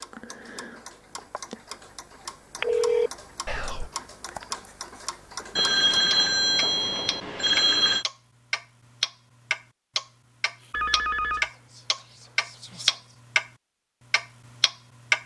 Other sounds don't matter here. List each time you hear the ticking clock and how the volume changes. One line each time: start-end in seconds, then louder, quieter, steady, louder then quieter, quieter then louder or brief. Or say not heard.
0.0-13.5 louder
14.1-15.2 brief.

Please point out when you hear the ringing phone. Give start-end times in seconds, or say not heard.
2.6-3.1, 5.5-8.1, 10.7-11.4.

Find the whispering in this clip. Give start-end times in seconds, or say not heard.
3.5-3.9, 11.3-13.2.